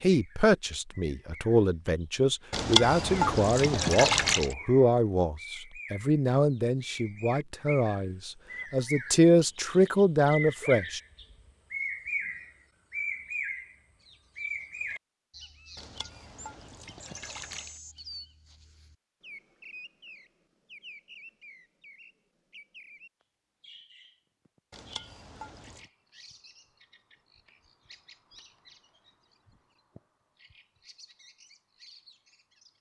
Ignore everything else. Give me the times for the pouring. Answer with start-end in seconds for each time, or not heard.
2.5-4.5, 15.8-17.8, 24.7-25.9.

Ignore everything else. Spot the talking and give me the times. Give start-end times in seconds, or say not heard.
0.0-11.0.